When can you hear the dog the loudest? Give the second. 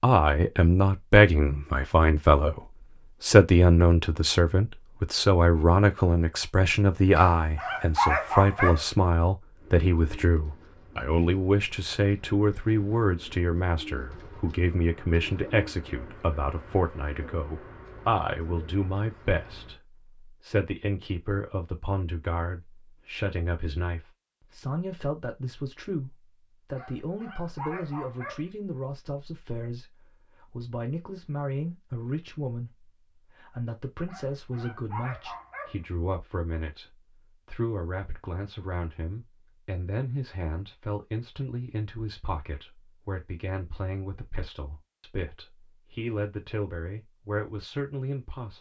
8 s.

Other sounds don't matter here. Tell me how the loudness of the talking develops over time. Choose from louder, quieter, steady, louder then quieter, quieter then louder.
quieter.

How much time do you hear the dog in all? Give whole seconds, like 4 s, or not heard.
5 s.